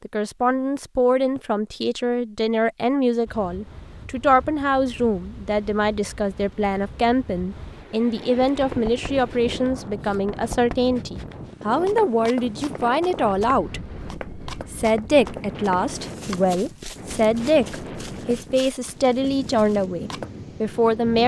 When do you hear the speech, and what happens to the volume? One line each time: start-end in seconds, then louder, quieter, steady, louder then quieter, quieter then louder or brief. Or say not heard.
0.0-21.2 steady.